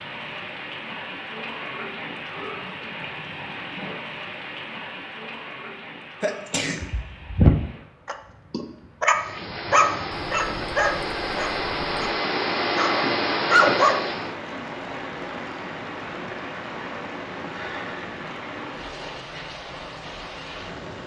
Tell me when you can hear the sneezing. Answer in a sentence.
The sneezing can be heard from 6.2 to 6.9 s.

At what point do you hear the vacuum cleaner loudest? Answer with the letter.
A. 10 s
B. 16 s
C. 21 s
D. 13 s
D.